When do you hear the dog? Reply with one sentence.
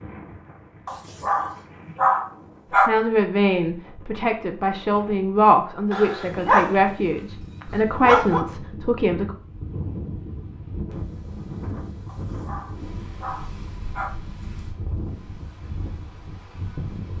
The dog can be heard from 0.8 to 2.9 s, from 5.9 to 8.4 s and from 12.1 to 14.1 s.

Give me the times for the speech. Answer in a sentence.
The speech can be heard from 2.9 to 9.3 s.